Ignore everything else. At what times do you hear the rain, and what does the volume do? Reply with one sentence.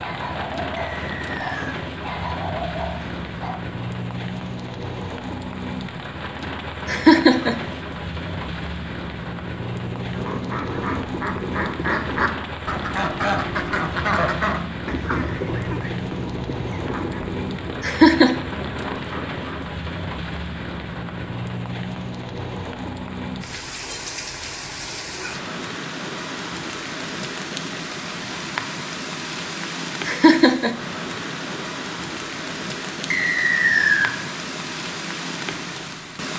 The rain can be heard from 0.0 to 36.3 s, at a steady volume.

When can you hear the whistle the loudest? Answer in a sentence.
The volume of the whistle peaks at 34 seconds.